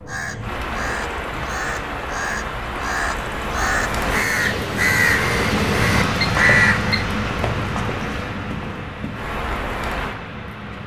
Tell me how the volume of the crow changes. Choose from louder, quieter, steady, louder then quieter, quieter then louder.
louder.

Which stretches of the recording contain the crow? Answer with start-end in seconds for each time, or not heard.
0.1-7.0.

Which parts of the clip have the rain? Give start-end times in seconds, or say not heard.
0.0-10.8.